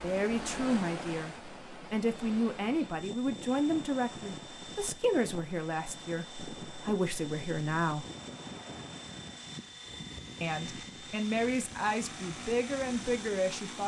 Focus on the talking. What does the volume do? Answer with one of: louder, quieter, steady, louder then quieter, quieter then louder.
steady.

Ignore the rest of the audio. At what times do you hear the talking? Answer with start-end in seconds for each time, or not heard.
0.0-8.1, 10.4-13.8.